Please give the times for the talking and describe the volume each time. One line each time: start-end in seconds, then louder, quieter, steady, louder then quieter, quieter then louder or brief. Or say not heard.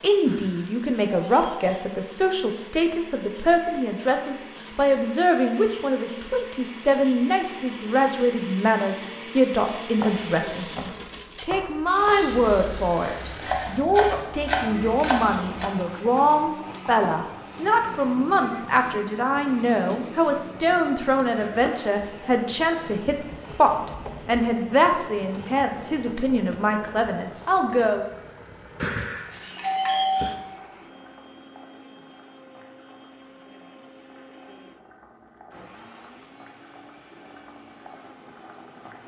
0.0-28.1 steady.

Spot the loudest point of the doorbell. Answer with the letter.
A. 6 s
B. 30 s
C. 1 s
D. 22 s
B.